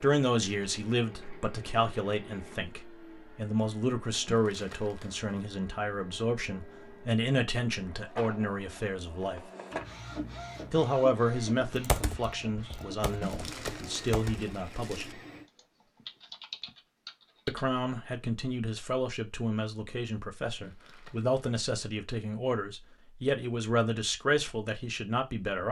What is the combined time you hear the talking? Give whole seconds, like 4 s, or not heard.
22 s.